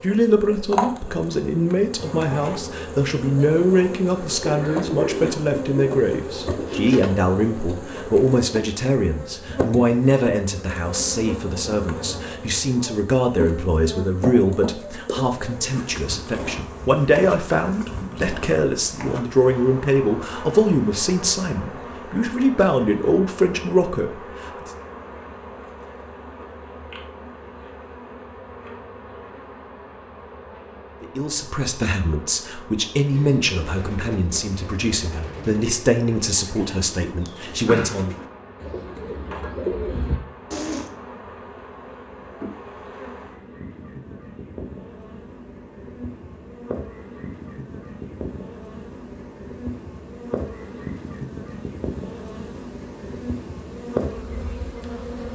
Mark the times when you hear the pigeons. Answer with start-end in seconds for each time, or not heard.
4.4-7.2, 33.1-40.9.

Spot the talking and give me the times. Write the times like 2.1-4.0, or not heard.
0.0-24.7, 31.0-38.1.